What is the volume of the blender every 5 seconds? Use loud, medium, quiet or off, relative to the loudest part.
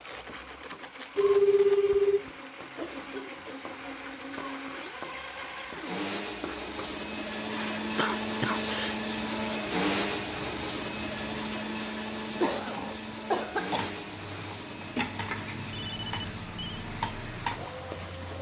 medium, loud, loud, medium.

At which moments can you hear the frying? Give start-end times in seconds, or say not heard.
0.0-18.3.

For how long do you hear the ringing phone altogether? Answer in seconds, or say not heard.
2 s.